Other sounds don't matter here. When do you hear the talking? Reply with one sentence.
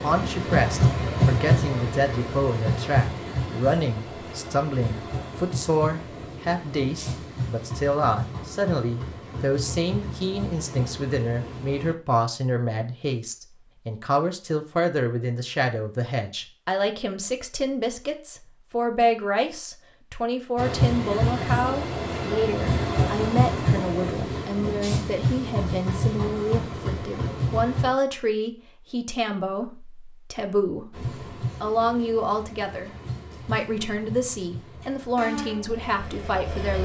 You can hear the talking from 0.0 to 36.7 s.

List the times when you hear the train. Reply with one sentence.
The train can be heard from 0.0 to 11.9 s, from 20.6 to 27.9 s and from 30.9 to 36.7 s.